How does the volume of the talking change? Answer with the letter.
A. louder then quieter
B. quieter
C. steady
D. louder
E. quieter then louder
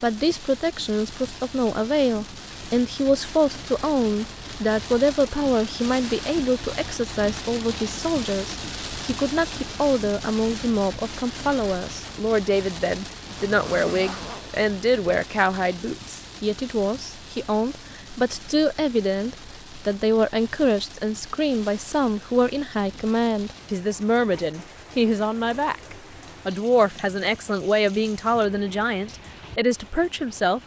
C.